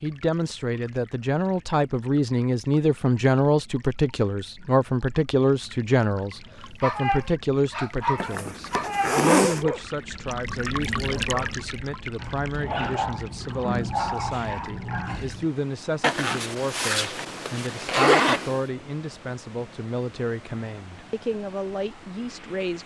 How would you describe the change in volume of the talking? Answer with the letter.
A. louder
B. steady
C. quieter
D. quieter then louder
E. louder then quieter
C.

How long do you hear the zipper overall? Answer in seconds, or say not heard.
4 s.